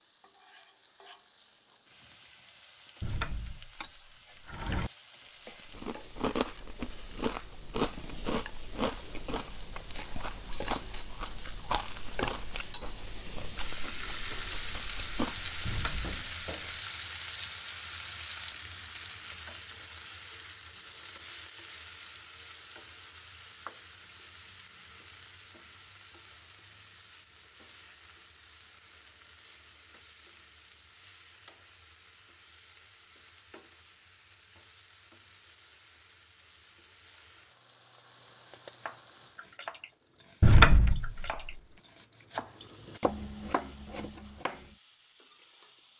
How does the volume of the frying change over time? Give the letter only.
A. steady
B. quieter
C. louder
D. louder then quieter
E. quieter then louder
D.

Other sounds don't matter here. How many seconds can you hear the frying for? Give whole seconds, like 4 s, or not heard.
46 s.